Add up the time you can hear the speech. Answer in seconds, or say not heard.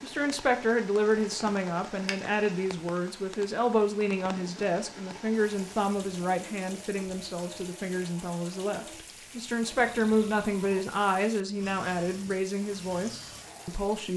14 s.